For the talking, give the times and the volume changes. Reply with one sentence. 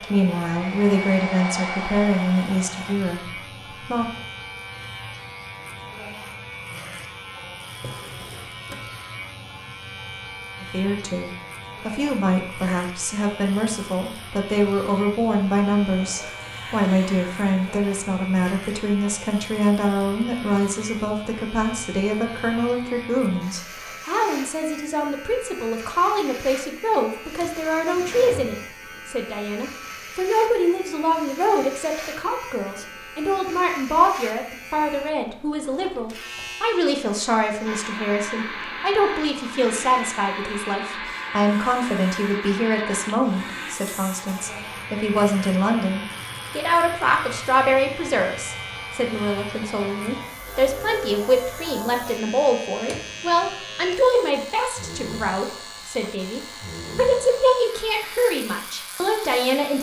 The talking can be heard from 0.0 to 4.0 s, getting quieter; and from 10.6 to 59.7 s, at a steady volume.